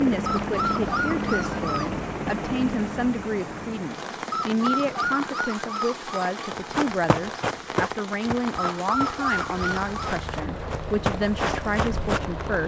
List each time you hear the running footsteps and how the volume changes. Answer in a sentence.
The running footsteps can be heard from 6.6 to 12.2 s, getting quieter then louder.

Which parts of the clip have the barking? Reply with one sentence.
The barking can be heard from 0.2 to 1.9 s, from 4.3 to 6.3 s and from 8.6 to 9.9 s.